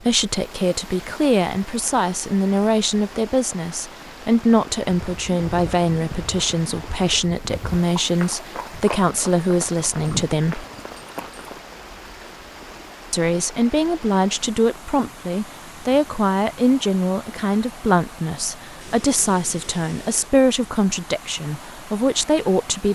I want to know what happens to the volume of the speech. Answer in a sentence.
The loudness of the speech stays about the same.